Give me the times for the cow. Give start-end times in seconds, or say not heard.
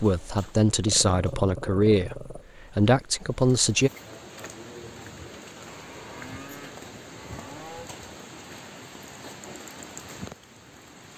5.7-7.9.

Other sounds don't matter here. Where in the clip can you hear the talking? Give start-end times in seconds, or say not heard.
0.0-3.9.